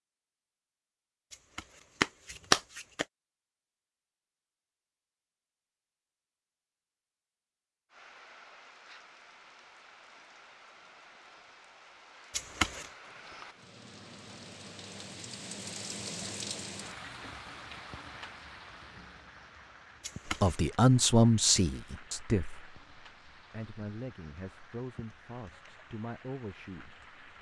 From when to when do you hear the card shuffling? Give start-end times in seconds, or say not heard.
1.3-3.0, 12.3-12.9, 20.0-20.8.